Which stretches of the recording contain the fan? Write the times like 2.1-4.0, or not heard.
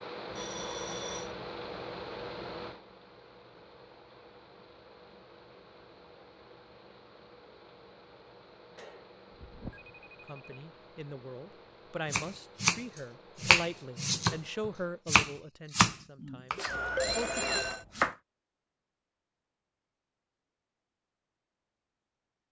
0.0-15.1.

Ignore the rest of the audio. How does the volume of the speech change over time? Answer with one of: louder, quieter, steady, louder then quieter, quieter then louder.
louder then quieter.